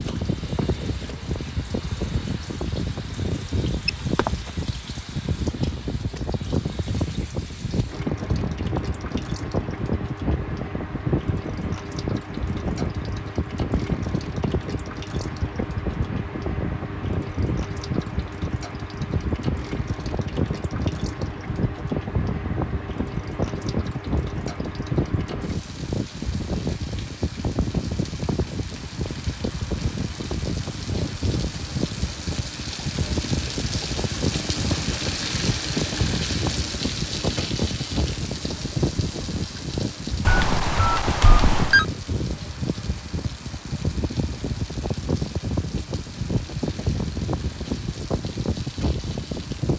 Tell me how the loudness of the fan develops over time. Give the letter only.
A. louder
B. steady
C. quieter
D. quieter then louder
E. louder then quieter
B.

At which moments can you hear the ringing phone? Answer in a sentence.
The ringing phone can be heard from 3.9 to 4.3 s and from 40.2 to 41.9 s.